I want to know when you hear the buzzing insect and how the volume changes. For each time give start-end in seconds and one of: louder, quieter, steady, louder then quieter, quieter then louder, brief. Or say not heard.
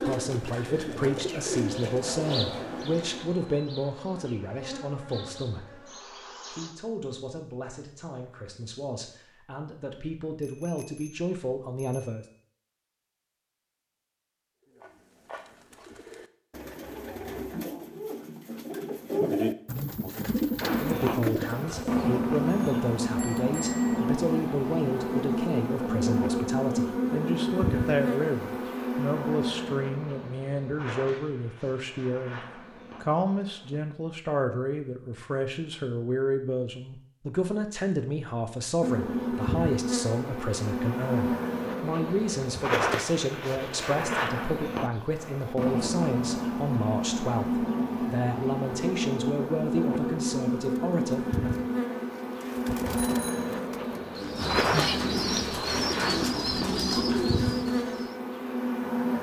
0.0-6.7 louder then quieter
20.6-33.8 quieter
38.8-59.1 steady.